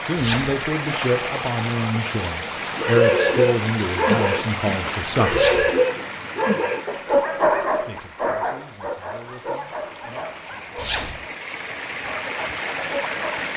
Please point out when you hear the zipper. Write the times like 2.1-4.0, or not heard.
0.1-0.6, 5.3-5.7, 10.8-11.2.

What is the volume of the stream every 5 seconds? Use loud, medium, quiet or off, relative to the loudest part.
loud, medium, loud.